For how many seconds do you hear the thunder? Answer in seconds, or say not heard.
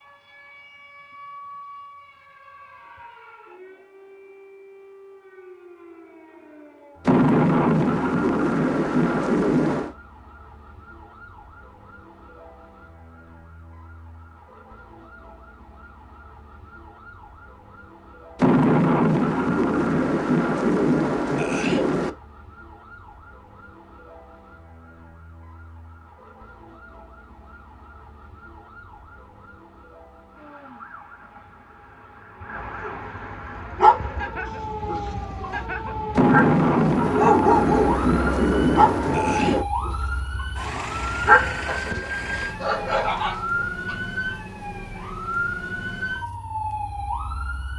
10 s.